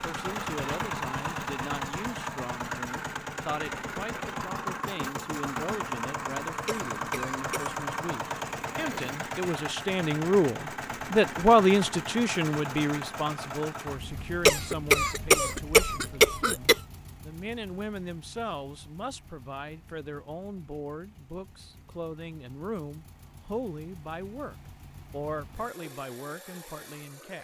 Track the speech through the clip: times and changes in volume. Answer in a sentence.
You can hear the speech from 0.0 to 27.4 s, getting louder then quieter.